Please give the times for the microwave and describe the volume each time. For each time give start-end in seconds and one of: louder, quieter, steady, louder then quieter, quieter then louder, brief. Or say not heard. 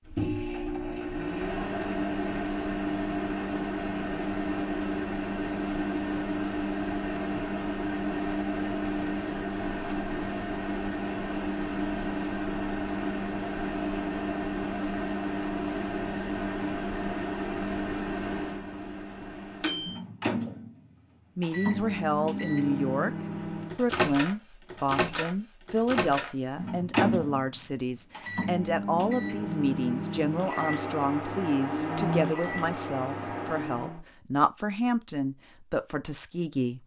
0.0-34.0 steady.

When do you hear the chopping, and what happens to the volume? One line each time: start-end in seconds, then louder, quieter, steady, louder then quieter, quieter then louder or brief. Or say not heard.
not heard.